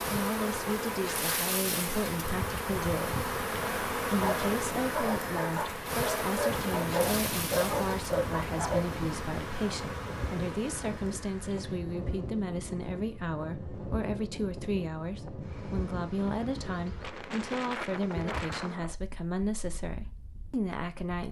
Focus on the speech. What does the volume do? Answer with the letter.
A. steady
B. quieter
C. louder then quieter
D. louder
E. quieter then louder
A.